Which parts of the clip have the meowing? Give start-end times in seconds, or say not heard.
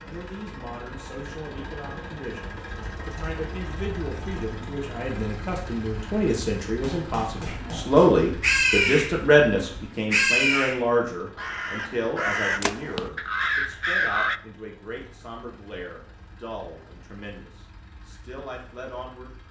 not heard.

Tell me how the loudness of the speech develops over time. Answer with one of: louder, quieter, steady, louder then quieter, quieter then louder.
louder then quieter.